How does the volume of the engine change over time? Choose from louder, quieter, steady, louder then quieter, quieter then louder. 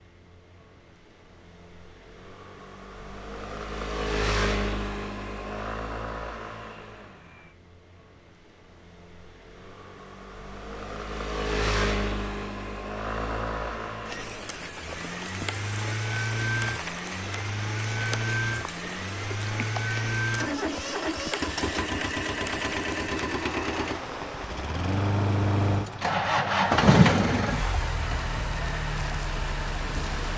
louder.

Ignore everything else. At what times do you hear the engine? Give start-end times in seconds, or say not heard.
0.1-30.3.